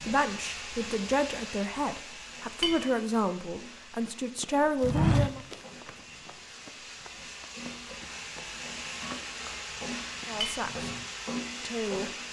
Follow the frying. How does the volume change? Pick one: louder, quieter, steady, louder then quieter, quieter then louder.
quieter then louder.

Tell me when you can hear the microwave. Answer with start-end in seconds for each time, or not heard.
not heard.